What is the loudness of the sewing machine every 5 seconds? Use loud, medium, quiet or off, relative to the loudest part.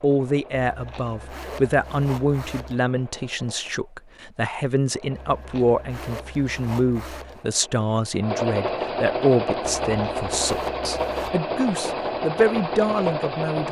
quiet, loud, loud.